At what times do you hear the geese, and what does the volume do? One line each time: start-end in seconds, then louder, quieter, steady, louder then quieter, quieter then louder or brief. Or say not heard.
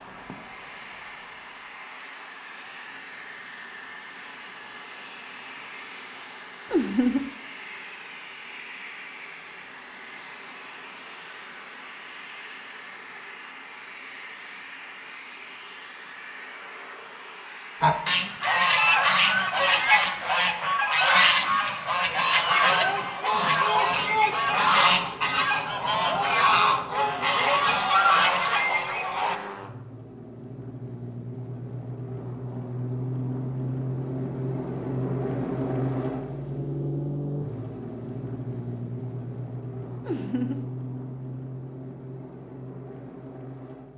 17.8-29.4 steady.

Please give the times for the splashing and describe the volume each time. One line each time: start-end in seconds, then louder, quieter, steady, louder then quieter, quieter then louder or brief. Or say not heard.
not heard.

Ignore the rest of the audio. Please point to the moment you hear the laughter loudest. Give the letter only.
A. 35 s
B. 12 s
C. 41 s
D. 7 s
D.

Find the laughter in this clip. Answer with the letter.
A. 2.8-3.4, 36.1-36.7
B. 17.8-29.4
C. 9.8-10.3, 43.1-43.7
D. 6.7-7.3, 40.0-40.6
D.